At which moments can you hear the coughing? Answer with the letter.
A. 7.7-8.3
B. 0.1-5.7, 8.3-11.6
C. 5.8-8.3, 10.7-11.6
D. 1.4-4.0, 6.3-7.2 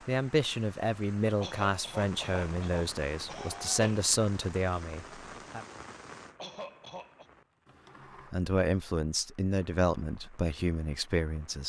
D.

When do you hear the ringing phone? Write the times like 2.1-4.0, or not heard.
not heard.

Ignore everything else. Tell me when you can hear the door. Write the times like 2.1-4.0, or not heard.
7.7-8.3.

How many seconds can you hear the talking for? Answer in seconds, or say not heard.
9 s.